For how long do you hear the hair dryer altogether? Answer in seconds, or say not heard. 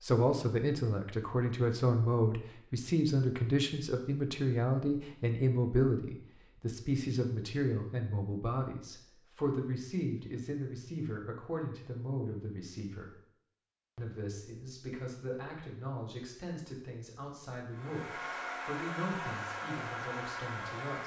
3 s.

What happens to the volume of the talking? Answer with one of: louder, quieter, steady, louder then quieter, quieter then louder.
quieter.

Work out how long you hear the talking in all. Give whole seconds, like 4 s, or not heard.
20 s.